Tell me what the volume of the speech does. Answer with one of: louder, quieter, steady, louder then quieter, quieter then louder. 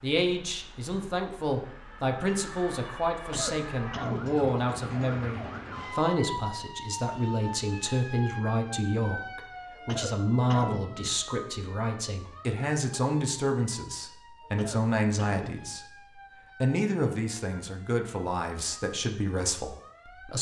steady.